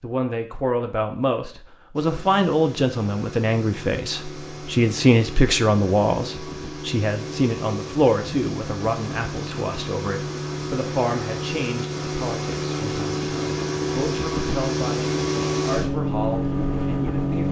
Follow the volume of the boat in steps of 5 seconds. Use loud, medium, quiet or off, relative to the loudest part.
quiet, medium, loud, loud.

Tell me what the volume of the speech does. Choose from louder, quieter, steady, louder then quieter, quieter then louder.
quieter.